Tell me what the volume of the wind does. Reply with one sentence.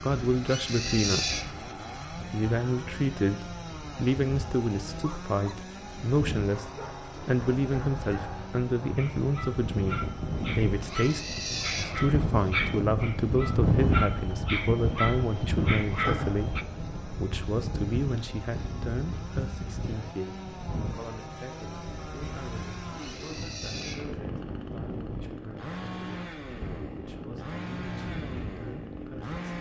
The volume of the wind goes up, then down.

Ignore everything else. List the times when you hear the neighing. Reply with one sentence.
The neighing can be heard from 0.3 to 1.5 s, from 10.7 to 12.1 s and from 22.9 to 24.1 s.